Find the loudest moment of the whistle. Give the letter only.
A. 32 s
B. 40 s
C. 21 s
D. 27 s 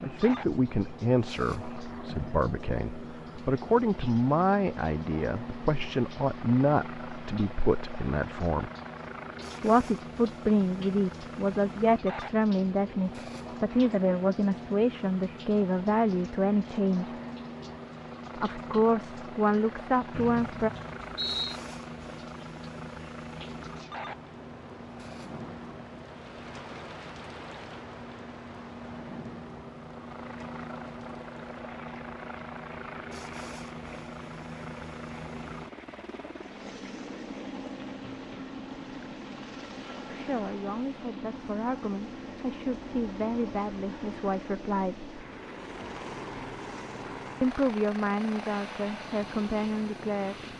C.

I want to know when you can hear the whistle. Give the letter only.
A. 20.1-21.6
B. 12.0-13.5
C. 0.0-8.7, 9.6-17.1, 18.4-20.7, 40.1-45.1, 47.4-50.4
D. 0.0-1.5
A.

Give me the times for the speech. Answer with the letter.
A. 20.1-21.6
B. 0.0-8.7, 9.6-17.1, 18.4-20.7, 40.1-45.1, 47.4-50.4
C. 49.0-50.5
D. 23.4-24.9
B.